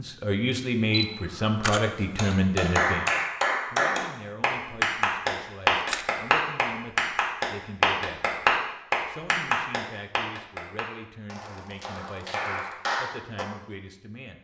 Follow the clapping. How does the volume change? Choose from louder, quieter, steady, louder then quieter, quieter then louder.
quieter.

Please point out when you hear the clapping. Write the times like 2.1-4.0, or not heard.
2.1-13.4.